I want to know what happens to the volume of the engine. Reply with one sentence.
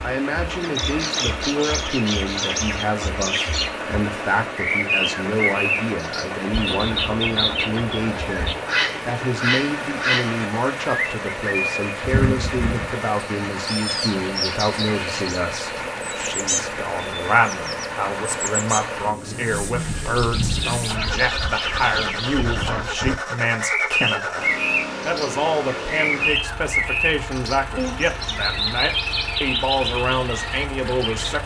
The loudness of the engine stays about the same.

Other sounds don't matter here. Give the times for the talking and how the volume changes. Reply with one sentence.
The talking can be heard from 0.0 to 31.4 s, at a steady volume.